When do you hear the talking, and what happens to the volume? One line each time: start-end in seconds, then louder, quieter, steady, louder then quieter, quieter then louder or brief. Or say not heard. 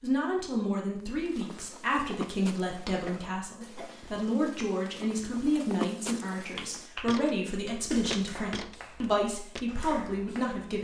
0.0-10.7 steady.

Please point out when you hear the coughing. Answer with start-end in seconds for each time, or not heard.
3.0-3.9.